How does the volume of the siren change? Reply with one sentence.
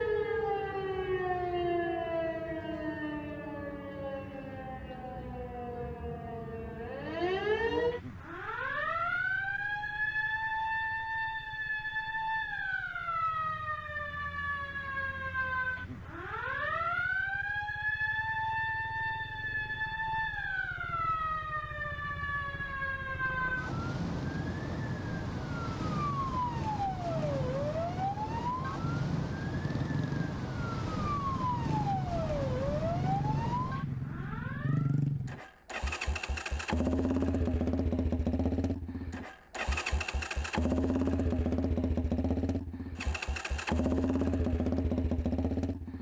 The loudness of the siren stays about the same.